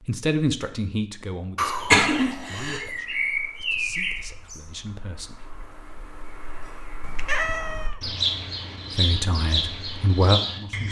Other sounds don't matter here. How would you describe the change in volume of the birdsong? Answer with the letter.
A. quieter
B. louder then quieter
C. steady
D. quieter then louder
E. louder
D.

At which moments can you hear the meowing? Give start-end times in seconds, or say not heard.
1.6-2.9, 7.0-8.0.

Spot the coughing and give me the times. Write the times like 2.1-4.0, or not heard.
1.7-2.8.